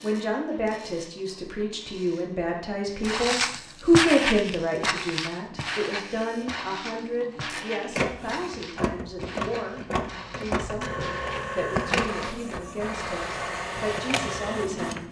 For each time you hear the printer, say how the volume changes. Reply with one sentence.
The printer can be heard from 0.0 to 15.0 s, getting louder.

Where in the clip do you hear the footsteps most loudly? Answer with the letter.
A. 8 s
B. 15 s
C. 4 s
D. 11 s
C.